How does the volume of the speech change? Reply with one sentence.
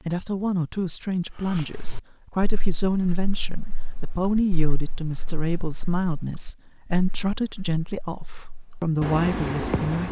The volume of the speech stays about the same.